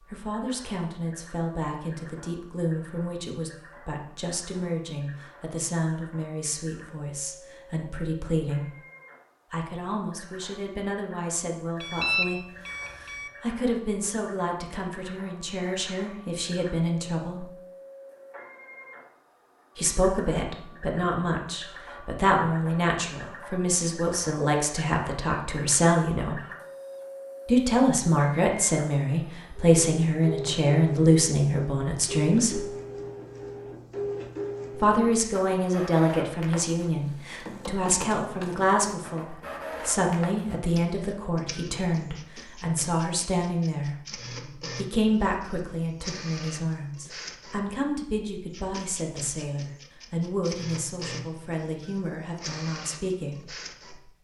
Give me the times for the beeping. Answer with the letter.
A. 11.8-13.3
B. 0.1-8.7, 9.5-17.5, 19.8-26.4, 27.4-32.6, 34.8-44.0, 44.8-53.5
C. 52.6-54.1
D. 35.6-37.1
A.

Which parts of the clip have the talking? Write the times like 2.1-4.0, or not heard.
0.1-8.7, 9.5-17.5, 19.8-26.4, 27.4-32.6, 34.8-44.0, 44.8-53.5.